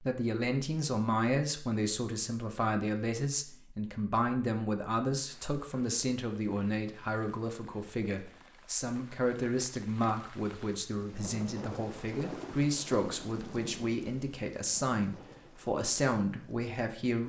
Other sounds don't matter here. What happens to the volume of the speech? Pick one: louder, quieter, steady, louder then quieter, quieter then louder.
steady.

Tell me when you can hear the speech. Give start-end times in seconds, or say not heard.
0.0-17.2.